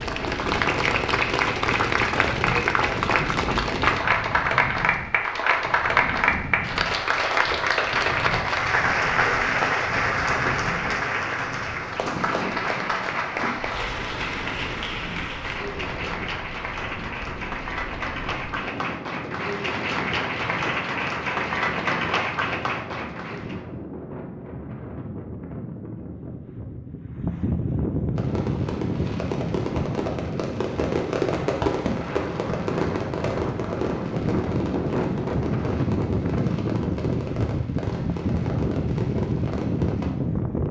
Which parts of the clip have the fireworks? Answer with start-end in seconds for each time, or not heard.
28.1-40.1.